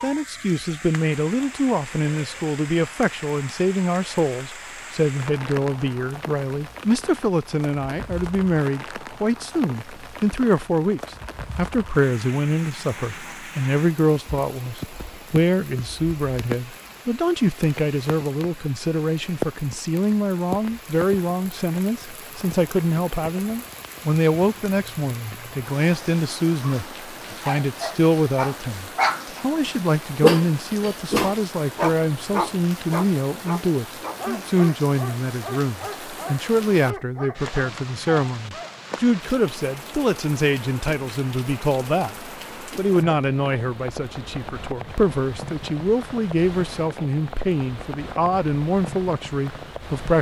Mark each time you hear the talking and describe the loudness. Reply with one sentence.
The talking can be heard from 0.0 to 50.1 s, at a steady volume.